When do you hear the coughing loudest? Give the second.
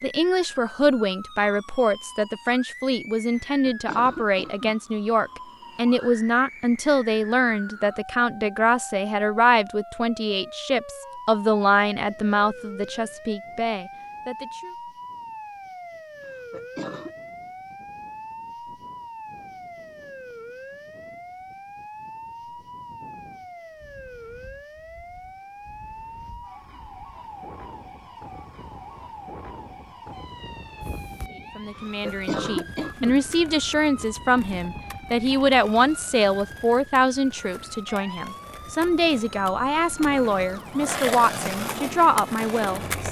32 s.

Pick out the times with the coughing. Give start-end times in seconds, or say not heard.
3.4-4.8, 16.2-17.1, 31.8-33.2.